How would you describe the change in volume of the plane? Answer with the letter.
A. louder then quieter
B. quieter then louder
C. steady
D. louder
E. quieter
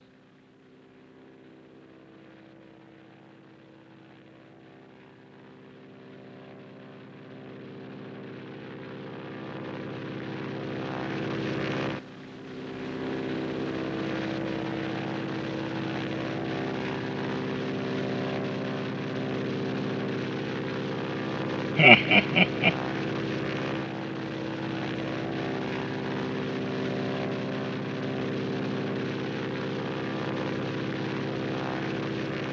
D.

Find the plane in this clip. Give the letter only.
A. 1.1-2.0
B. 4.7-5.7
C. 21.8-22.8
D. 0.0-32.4
D.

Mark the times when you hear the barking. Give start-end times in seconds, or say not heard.
not heard.